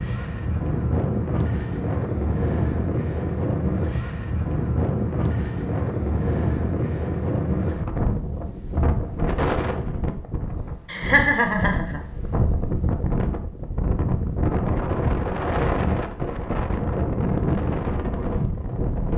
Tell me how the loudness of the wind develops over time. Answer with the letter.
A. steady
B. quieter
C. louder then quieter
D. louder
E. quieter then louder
A.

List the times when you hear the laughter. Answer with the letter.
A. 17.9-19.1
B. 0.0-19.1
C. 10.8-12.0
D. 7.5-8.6
C.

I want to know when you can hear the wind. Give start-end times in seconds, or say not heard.
0.0-19.1.